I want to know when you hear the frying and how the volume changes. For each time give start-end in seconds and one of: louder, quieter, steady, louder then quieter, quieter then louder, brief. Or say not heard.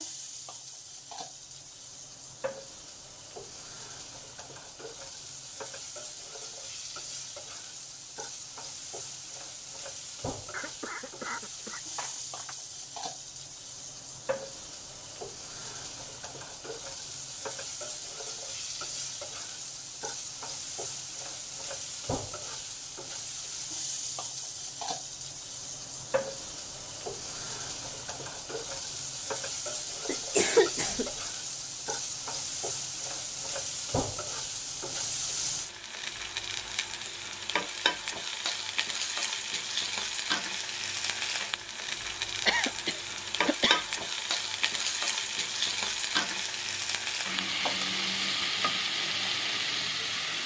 0.0-50.4 louder.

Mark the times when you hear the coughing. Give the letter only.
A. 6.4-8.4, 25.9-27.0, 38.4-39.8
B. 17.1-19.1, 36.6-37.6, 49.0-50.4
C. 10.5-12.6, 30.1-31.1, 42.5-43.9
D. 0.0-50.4
C.